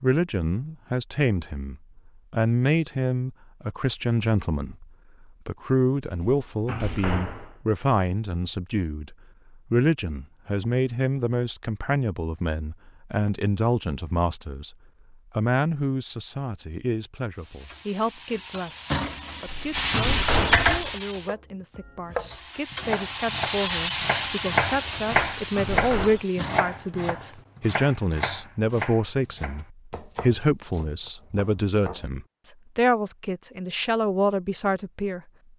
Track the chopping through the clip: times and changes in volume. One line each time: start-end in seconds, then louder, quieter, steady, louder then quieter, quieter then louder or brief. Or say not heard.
21.1-32.0 louder then quieter.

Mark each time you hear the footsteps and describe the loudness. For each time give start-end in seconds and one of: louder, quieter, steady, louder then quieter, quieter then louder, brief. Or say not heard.
not heard.